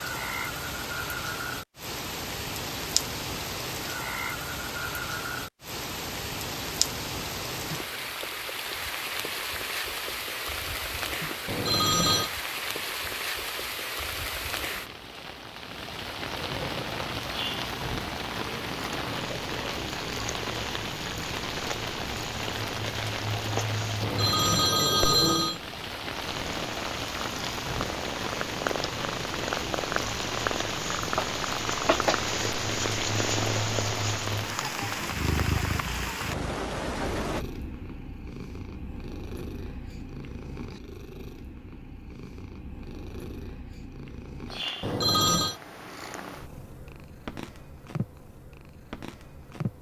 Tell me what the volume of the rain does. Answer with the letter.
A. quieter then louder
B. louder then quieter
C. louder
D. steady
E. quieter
D.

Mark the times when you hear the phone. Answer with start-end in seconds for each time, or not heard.
11.4-12.3, 24.0-25.6, 44.8-45.5.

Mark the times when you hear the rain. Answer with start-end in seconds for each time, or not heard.
0.0-37.5.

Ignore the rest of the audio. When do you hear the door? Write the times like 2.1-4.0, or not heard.
not heard.